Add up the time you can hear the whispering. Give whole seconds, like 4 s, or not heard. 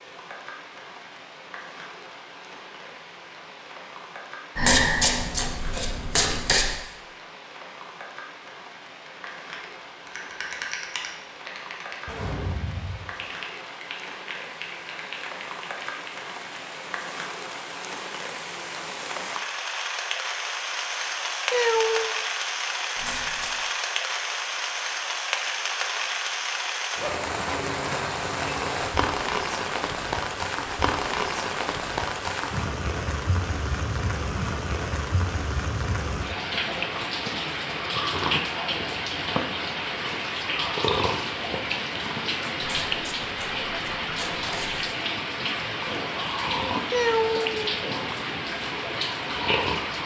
not heard.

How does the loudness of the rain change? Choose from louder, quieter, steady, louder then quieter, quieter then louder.
louder.